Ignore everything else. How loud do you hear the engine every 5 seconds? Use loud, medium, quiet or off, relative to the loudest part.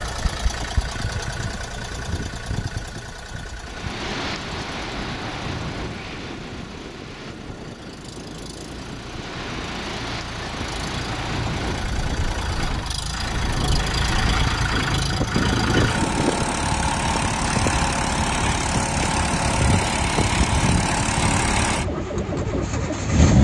medium, quiet, medium, loud, loud.